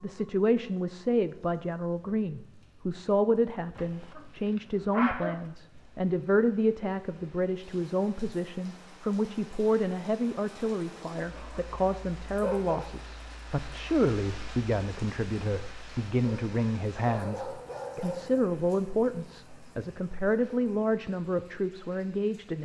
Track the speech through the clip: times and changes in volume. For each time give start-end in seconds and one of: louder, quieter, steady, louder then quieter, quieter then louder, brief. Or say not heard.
0.0-22.5 steady.